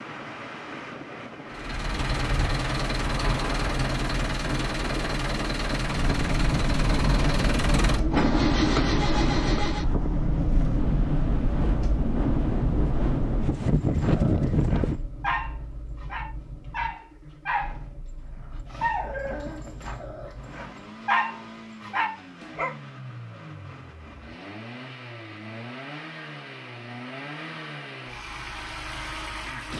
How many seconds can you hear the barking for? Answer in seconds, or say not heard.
9 s.